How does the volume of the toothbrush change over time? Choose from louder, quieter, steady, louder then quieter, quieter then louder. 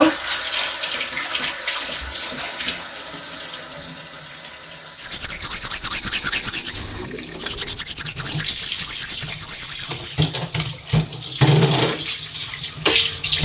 quieter.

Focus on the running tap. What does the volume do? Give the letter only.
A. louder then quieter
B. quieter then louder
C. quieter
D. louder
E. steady
B.